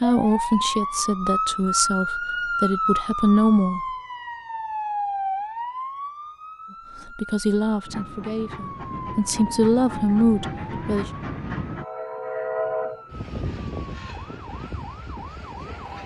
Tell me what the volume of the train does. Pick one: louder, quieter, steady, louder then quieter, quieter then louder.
louder then quieter.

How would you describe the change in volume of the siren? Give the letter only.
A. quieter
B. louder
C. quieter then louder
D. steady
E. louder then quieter
A.